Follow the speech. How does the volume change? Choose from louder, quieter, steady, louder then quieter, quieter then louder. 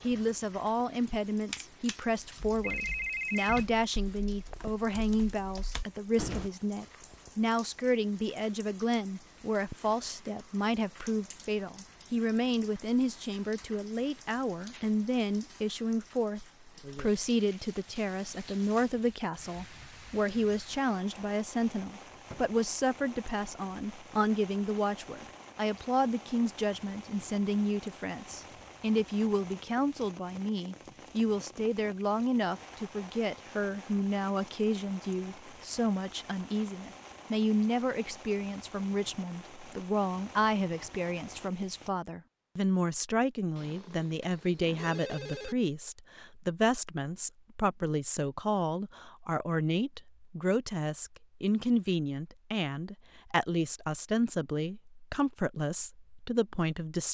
steady.